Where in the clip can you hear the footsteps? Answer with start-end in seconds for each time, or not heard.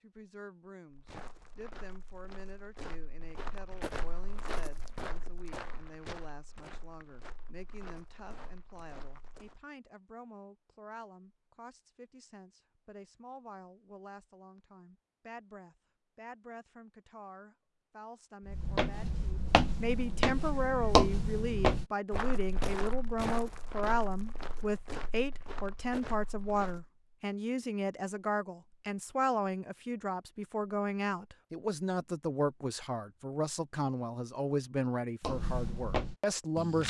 0.9-9.6, 18.4-26.9, 35.2-36.8.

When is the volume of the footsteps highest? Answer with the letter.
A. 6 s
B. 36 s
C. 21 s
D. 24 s
C.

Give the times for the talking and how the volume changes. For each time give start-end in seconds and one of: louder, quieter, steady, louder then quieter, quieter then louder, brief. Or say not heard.
0.0-36.8 louder.